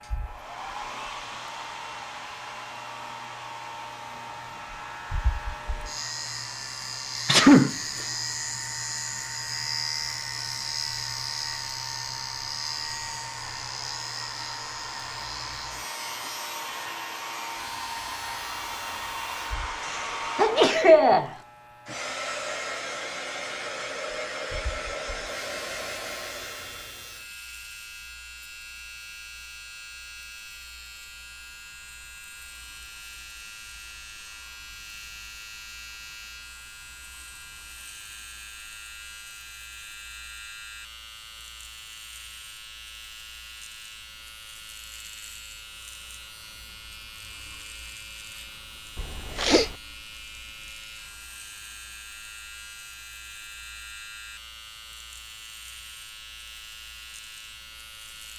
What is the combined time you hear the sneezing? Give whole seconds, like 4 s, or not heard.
3 s.